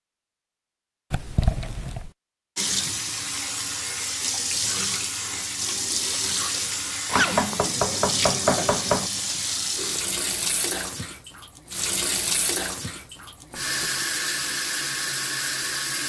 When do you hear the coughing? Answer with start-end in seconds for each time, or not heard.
not heard.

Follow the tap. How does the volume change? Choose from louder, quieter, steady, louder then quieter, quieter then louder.
steady.